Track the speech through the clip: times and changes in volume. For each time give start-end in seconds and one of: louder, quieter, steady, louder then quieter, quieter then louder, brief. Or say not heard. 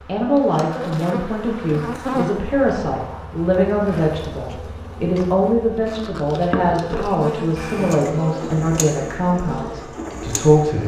0.1-10.8 steady.